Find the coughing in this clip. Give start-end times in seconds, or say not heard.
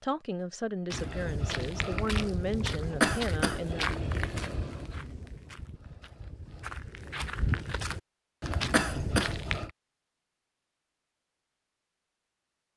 3.0-3.6, 8.7-9.3.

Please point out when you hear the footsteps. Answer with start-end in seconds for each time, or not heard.
0.9-9.7.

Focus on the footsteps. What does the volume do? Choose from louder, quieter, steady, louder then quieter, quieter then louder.
quieter then louder.